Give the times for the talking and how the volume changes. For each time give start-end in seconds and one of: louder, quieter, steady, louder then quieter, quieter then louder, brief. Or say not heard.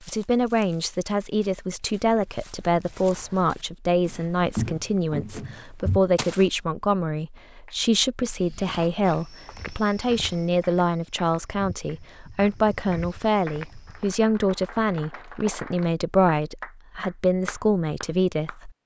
0.1-18.7 steady.